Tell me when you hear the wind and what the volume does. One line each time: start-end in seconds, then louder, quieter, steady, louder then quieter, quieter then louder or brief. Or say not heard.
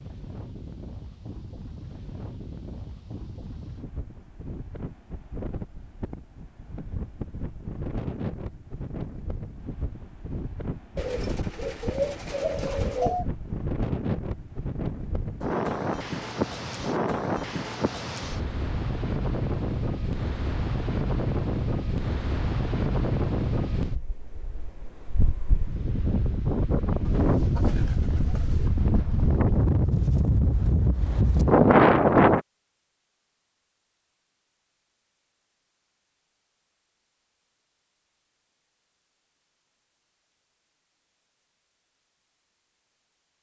0.0-32.4 louder.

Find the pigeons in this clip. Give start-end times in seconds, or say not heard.
10.9-13.2, 27.1-28.7.